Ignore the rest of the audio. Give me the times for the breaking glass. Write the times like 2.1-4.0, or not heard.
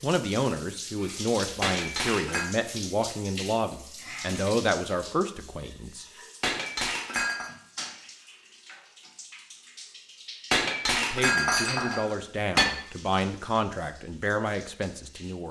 1.6-2.5, 6.4-7.5, 10.5-12.7.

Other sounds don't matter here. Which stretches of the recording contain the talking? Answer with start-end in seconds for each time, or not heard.
0.0-6.0, 10.9-15.4.